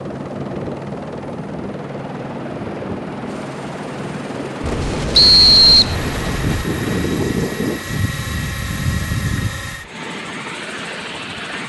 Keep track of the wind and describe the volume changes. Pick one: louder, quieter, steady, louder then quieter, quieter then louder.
louder.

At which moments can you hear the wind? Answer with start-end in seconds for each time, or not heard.
0.1-9.8.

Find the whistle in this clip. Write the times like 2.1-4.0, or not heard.
5.2-6.0.